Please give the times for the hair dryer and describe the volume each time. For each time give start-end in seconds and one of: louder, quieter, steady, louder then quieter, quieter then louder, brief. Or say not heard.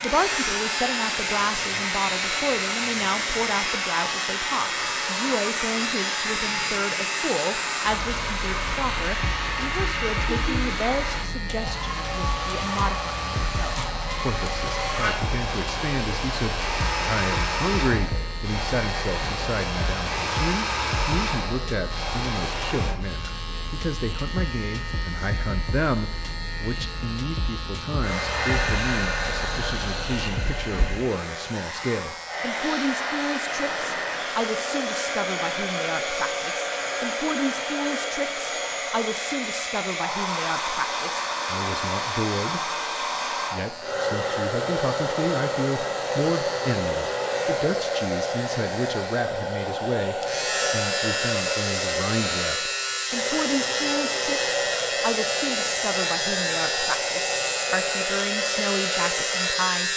0.0-23.0 steady
28.0-59.9 steady.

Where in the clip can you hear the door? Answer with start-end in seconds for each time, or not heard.
not heard.